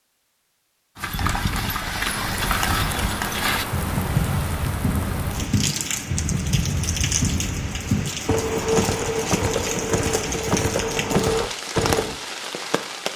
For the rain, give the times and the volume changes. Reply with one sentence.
You can hear the rain from 2.1 to 13.1 s, at a steady volume.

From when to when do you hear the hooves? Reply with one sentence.
You can hear the hooves from 0.9 to 12.2 s.